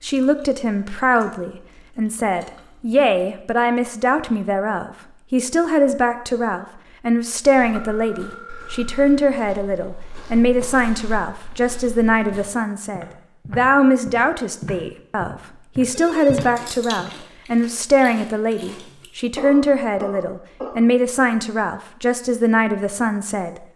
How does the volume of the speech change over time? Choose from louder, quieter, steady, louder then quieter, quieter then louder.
steady.